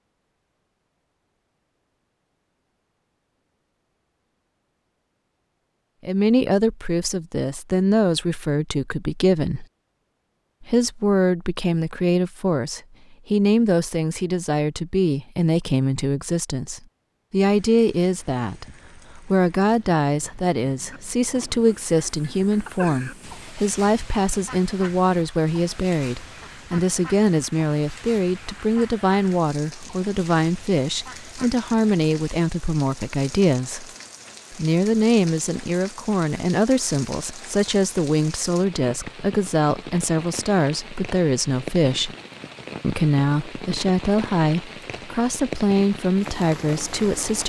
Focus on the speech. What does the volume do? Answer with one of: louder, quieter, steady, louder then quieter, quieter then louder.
steady.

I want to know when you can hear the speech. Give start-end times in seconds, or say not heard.
6.0-9.7, 10.6-33.9, 34.5-42.1, 42.8-47.4.